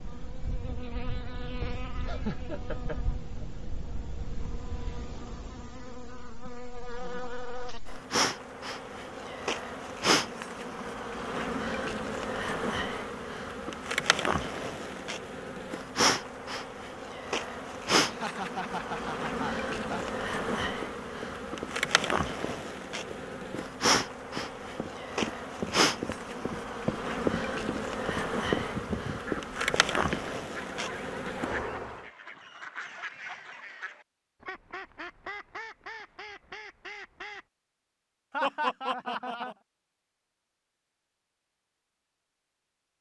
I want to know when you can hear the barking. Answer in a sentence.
The barking can't be heard in this clip.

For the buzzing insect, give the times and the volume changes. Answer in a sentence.
You can hear the buzzing insect from 0.0 to 32.0 s, getting louder.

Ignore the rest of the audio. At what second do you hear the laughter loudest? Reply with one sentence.
The loudest moment of the laughter is at 39 seconds.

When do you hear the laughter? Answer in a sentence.
The laughter can be heard from 2.0 to 3.5 s, from 18.1 to 20.1 s and from 38.3 to 39.5 s.